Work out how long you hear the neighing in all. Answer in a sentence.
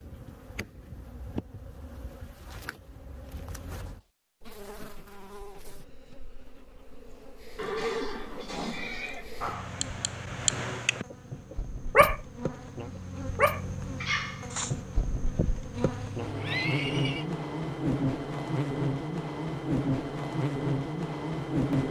You can hear the neighing for 3 seconds altogether.